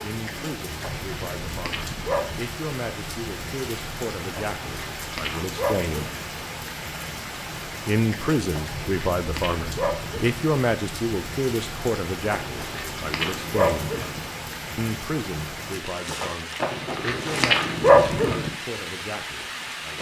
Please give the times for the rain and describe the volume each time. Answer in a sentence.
The rain can be heard from 0.0 to 19.9 s, at a steady volume.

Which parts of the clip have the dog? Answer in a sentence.
The dog can be heard from 0.8 to 2.4 s, from 4.3 to 6.2 s, from 8.5 to 10.4 s, from 12.3 to 14.2 s and from 16.6 to 18.5 s.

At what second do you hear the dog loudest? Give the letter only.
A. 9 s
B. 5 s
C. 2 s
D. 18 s
D.